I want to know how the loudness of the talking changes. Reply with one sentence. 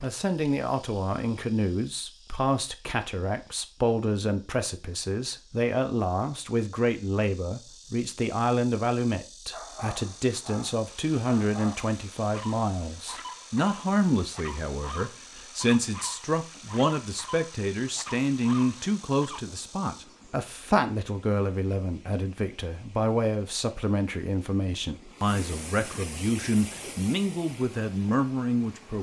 The loudness of the talking stays about the same.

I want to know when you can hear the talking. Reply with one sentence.
You can hear the talking from 0.0 to 28.9 s.